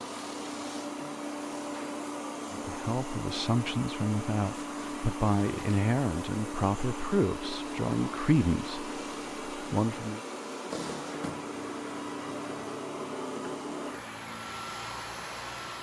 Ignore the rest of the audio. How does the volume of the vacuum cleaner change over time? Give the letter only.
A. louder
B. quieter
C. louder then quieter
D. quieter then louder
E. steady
E.